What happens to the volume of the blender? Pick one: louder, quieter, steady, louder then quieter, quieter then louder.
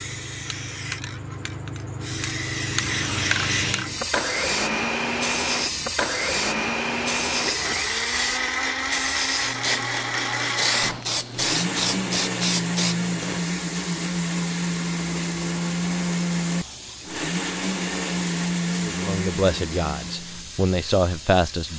steady.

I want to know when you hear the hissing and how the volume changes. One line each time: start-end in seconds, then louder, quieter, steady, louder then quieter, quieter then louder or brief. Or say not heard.
0.0-21.7 quieter.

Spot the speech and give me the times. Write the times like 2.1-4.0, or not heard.
18.9-21.7.